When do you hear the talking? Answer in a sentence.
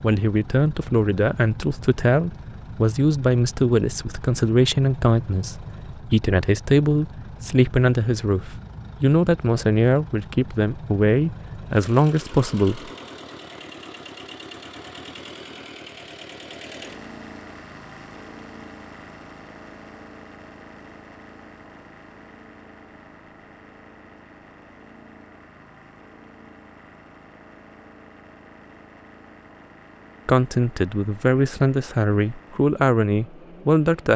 You can hear the talking from 0.0 to 12.9 s and from 30.2 to 34.1 s.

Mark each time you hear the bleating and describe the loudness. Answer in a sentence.
The bleating can't be heard in this clip.